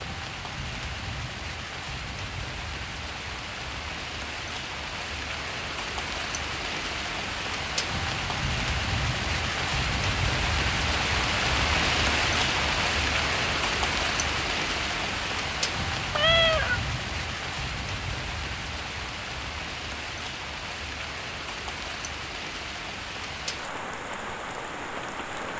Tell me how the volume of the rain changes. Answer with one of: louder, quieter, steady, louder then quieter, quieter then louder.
louder then quieter.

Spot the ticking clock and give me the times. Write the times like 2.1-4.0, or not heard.
not heard.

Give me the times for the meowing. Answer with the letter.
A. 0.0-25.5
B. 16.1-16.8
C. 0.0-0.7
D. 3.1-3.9
B.